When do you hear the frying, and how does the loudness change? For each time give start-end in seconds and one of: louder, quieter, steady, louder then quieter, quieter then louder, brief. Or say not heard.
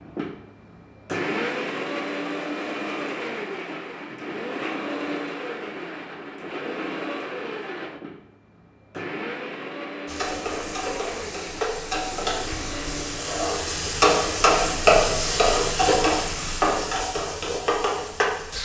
10.1-18.6 louder then quieter.